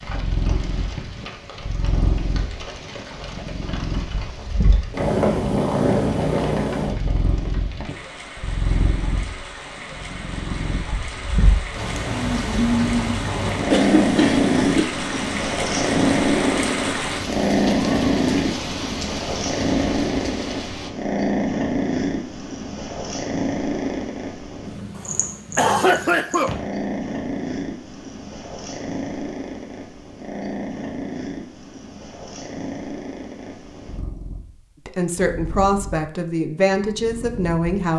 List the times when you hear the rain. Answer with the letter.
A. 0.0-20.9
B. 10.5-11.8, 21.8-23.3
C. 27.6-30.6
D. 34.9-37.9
A.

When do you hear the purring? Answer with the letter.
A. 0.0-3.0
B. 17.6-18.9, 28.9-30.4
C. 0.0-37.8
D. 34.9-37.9
C.